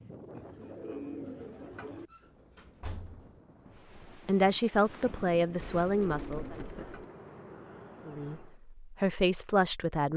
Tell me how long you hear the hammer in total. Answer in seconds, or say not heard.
not heard.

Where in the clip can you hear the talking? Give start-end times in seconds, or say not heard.
4.2-6.5, 8.1-10.1.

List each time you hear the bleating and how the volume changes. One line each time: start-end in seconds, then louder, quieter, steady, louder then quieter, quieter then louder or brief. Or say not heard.
not heard.